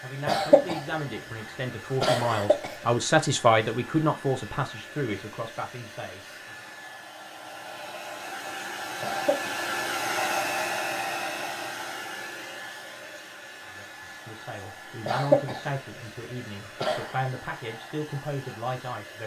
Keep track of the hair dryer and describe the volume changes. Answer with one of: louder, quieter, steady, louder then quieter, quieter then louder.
louder then quieter.